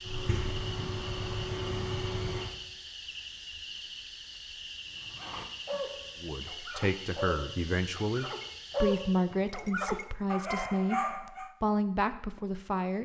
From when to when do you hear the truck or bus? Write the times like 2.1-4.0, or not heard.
0.0-2.5.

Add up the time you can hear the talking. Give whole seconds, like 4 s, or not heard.
7 s.